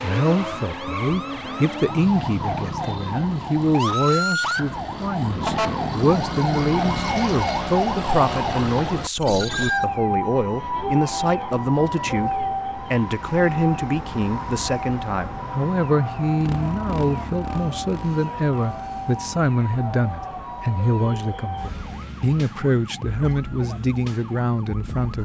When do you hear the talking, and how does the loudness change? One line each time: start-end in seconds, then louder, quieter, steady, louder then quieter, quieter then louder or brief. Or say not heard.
0.0-25.1 steady.